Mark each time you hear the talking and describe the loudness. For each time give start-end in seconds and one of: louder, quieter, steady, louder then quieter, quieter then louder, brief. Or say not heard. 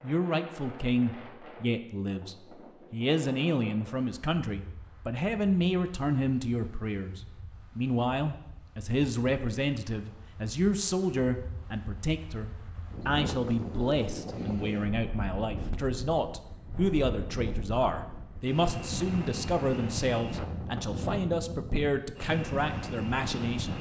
0.0-23.7 steady.